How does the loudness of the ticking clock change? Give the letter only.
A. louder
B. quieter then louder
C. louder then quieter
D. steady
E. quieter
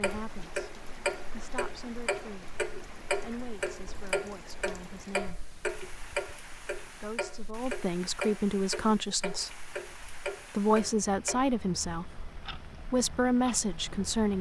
E.